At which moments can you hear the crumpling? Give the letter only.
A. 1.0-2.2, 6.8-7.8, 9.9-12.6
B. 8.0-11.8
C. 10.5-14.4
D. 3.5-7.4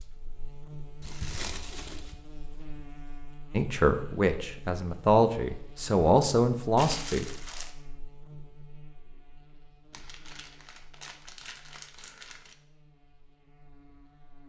A.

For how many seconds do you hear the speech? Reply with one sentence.
You can hear the speech for 4 seconds altogether.